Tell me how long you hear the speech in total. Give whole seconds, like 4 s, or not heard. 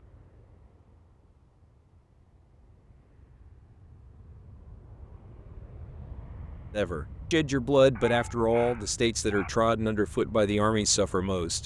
5 s.